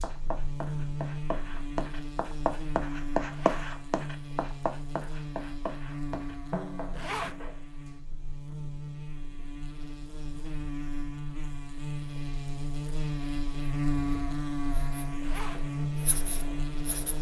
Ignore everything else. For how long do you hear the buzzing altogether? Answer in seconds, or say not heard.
17 s.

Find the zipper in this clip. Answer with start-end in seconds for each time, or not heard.
3.2-3.8, 6.9-7.4, 15.2-15.7.